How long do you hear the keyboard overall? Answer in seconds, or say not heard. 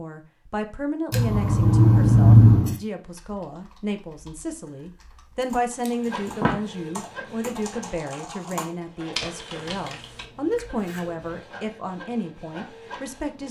7 s.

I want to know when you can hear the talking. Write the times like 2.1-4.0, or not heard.
0.0-13.4.